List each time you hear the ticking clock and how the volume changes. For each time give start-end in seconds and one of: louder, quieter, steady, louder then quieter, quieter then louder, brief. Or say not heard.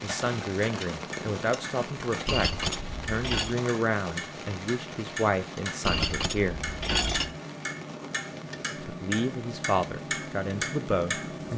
0.0-11.5 louder.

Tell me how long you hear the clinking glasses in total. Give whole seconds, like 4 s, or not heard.
3 s.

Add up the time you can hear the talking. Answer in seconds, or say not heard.
9 s.